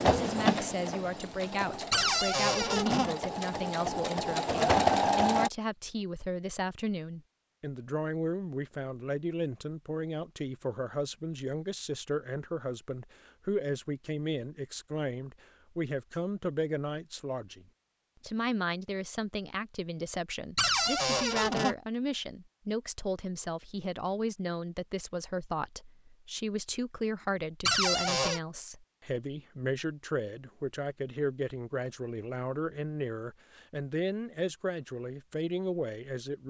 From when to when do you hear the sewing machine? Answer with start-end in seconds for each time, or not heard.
0.0-5.5.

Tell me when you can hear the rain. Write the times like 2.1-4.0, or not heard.
not heard.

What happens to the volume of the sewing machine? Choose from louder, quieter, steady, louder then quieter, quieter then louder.
quieter then louder.